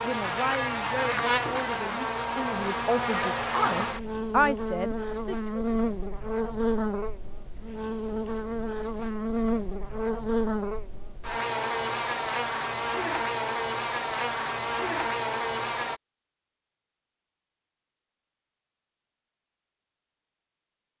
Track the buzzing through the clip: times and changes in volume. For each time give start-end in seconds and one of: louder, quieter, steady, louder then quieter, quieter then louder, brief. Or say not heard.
0.0-16.0 steady.